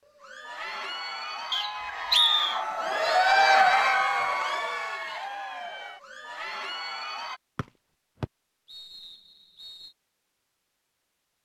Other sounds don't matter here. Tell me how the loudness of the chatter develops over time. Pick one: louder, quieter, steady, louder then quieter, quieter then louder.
louder then quieter.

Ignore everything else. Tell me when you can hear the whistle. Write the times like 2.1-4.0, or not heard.
1.5-2.6, 7.5-9.9.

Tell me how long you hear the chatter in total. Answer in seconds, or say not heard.
7 s.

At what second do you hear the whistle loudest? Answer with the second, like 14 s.
2 s.